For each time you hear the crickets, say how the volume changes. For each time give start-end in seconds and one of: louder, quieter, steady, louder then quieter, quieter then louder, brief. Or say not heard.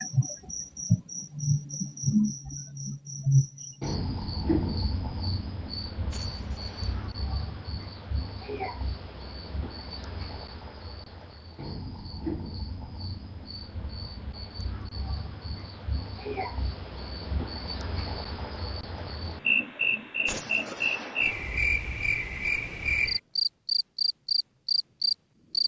0.0-25.6 quieter then louder.